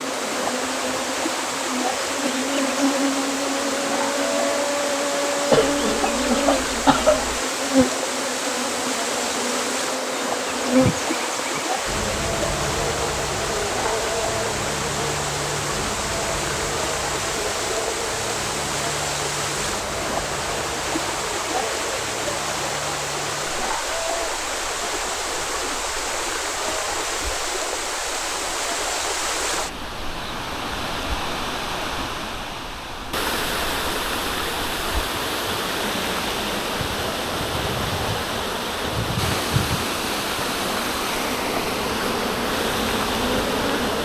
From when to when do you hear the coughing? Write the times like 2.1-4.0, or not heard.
5.5-7.4.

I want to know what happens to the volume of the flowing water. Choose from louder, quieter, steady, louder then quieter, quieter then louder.
steady.